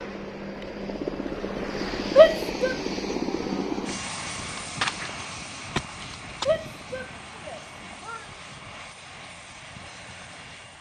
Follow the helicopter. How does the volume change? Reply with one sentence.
The loudness of the helicopter goes down.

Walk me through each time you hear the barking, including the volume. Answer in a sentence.
The barking can't be heard in this clip.